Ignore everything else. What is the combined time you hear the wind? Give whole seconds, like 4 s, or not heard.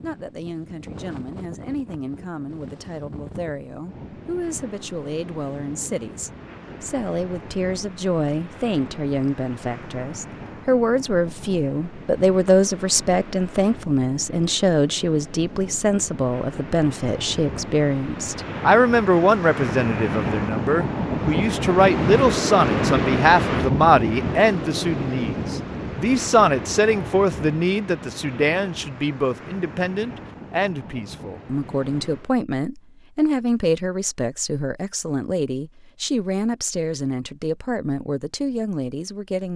32 s.